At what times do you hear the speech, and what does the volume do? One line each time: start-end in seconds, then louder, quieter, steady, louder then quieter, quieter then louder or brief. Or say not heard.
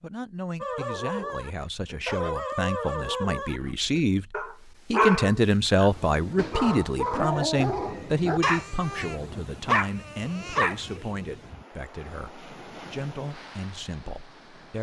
0.0-14.7 louder then quieter.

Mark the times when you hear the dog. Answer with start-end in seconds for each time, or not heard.
0.6-11.0.